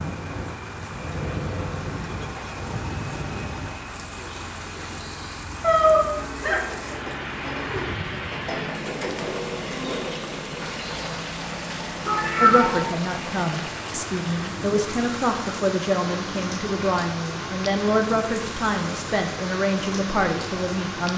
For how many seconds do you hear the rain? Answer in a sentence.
You can hear the rain for 21 seconds altogether.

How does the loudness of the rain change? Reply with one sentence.
The volume of the rain stays about the same.